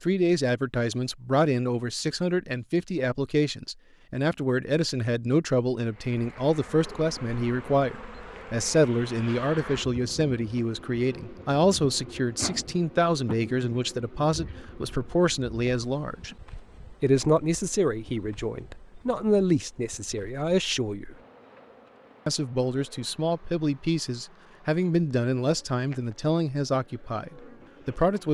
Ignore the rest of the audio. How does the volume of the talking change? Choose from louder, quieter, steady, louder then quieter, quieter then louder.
steady.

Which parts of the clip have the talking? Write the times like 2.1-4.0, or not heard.
0.0-16.4, 17.0-21.1, 22.2-28.3.